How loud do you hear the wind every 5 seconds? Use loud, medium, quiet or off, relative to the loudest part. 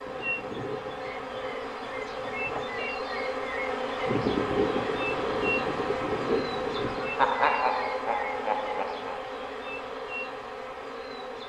loud, loud, off.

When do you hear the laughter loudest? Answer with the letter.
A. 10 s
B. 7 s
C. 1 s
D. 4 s
B.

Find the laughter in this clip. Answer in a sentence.
You can hear the laughter from 6.7 to 9.2 s.